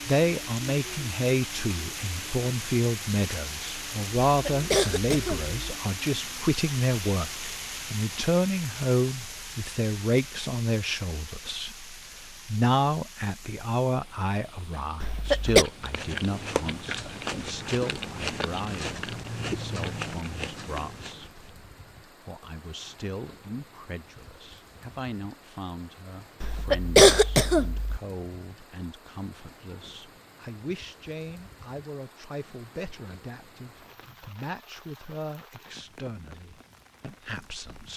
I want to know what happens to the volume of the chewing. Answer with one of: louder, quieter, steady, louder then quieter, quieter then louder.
steady.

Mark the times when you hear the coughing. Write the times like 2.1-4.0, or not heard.
4.2-5.5, 15.0-15.7, 26.4-28.0.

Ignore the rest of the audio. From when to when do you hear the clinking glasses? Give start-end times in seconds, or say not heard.
not heard.